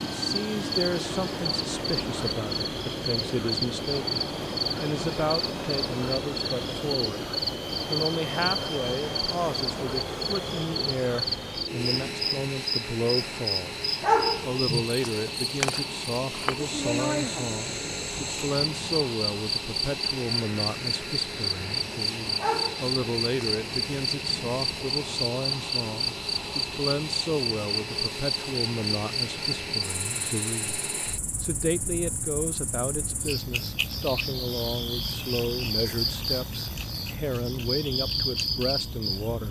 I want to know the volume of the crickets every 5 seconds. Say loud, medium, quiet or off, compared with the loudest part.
loud, loud, loud, loud, loud, loud, medium, loud.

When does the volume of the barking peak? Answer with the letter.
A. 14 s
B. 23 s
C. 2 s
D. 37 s
A.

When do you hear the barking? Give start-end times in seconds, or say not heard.
14.0-15.3, 22.4-23.6.